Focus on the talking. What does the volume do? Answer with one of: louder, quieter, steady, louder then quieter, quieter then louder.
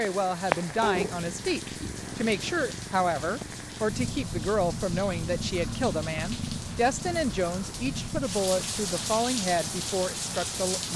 steady.